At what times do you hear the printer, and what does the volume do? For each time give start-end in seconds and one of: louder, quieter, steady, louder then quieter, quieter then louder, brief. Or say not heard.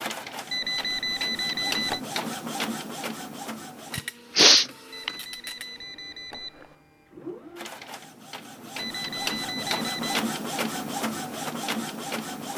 0.0-12.5 quieter then louder.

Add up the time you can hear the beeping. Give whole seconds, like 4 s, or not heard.
5 s.